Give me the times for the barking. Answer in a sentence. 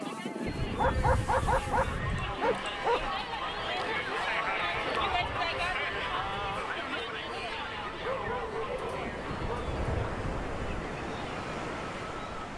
The barking can be heard from 0.8 to 3.1 s and from 8.0 to 10.2 s.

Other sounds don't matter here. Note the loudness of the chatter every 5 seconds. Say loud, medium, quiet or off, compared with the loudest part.
loud, loud, medium.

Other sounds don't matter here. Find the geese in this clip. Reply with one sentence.
You can hear the geese from 0.5 to 2.4 s, from 4.6 to 6.7 s and from 9.2 to 10.8 s.